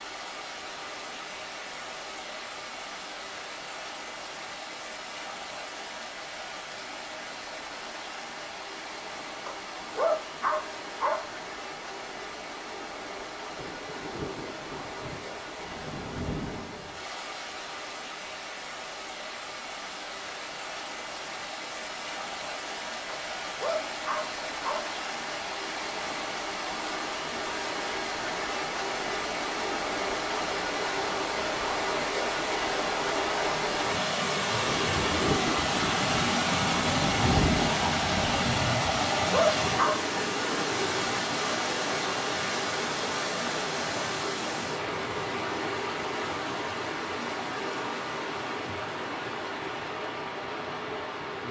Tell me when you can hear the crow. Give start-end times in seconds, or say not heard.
not heard.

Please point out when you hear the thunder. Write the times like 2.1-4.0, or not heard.
13.6-17.0, 34.6-38.8.